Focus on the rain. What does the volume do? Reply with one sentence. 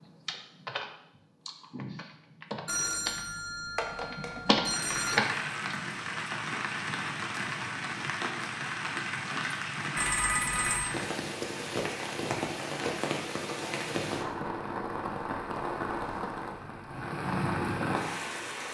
The loudness of the rain stays about the same.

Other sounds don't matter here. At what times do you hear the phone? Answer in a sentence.
You can hear the phone from 2.6 to 5.2 s and from 9.9 to 10.9 s.